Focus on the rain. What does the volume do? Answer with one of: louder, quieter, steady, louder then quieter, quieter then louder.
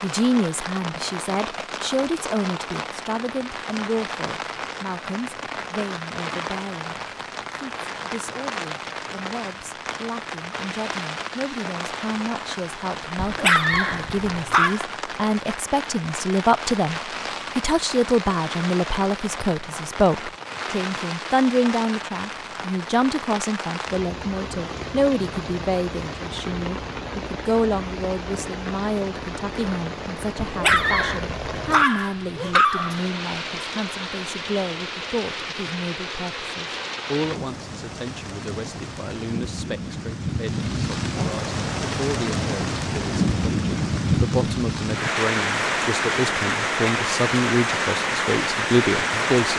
louder.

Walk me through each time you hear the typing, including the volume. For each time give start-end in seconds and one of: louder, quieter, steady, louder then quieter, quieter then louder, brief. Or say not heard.
not heard.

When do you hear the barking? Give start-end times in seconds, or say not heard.
13.2-14.8, 30.4-33.0.